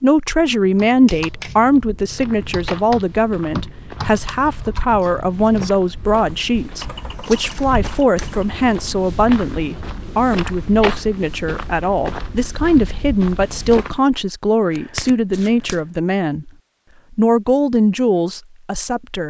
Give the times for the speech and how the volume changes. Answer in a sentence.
The speech can be heard from 0.0 to 16.5 s, at a steady volume; and briefly from 17.1 to 19.2 s.